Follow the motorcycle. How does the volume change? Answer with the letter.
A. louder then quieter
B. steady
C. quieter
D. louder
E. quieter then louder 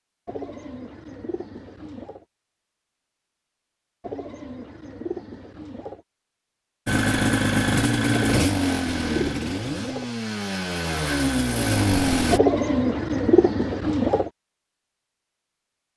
E.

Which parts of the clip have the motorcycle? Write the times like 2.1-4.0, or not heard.
6.8-12.4.